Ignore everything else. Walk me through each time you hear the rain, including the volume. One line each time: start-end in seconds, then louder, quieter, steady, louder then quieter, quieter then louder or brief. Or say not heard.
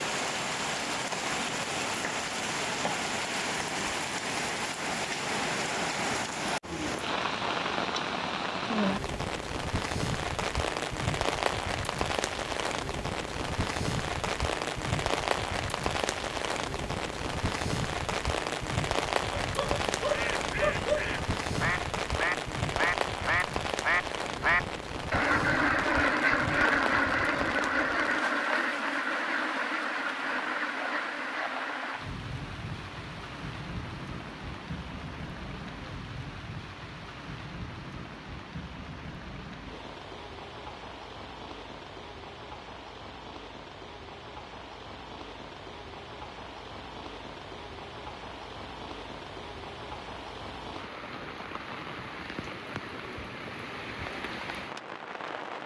0.0-55.6 quieter.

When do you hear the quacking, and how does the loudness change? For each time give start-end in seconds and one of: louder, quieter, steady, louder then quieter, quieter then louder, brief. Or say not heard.
20.1-32.0 louder then quieter.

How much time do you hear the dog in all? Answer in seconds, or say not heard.
2 s.